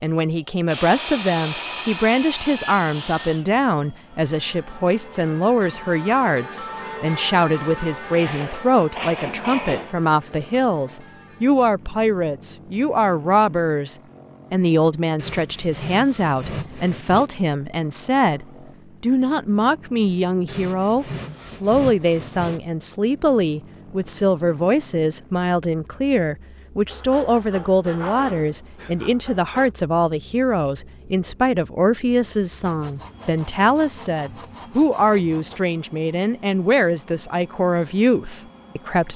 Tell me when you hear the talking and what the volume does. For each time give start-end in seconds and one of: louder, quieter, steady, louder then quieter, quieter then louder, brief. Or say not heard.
0.0-39.1 steady.